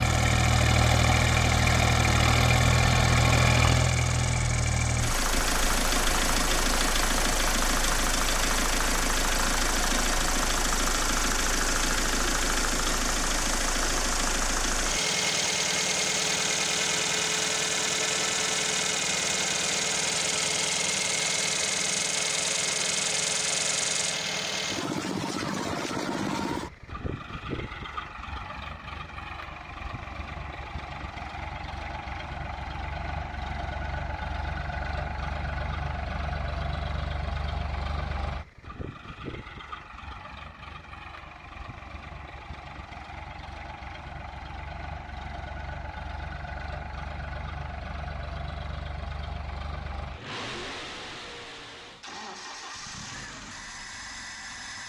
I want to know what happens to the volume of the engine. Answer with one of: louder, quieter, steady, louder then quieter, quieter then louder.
quieter.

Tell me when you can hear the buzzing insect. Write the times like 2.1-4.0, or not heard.
0.0-24.1.